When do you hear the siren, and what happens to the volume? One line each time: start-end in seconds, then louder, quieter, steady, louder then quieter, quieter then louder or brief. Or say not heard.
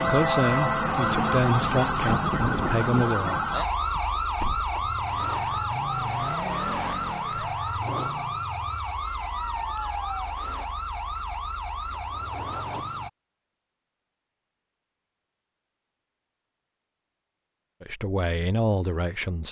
0.0-13.1 quieter.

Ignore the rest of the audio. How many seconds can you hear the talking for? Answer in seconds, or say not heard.
5 s.